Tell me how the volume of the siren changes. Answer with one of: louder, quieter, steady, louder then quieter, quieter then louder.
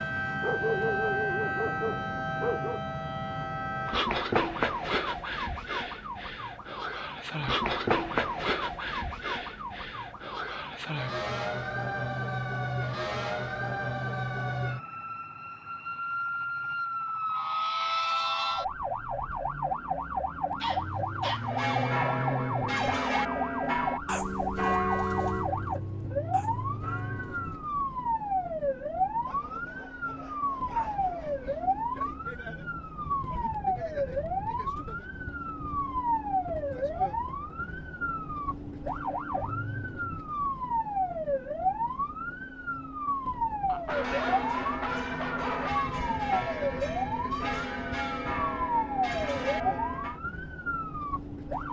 steady.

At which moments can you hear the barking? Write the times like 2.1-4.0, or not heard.
0.4-2.8, 20.6-21.5, 29.2-31.7, 43.6-45.7.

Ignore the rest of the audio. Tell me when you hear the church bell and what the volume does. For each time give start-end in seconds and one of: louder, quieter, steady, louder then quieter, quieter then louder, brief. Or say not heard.
21.4-27.7 quieter
43.9-50.2 steady.